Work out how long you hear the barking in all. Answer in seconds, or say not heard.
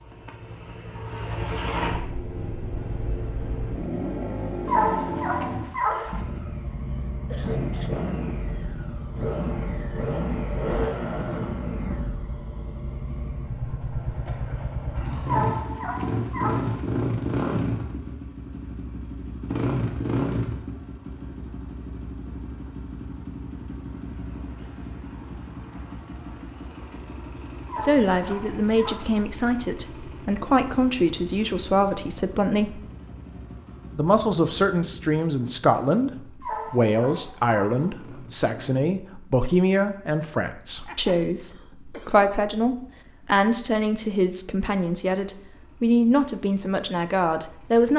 6 s.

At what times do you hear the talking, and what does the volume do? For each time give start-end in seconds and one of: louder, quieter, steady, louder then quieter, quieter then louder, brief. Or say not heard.
27.8-32.8 steady
34.0-47.9 steady.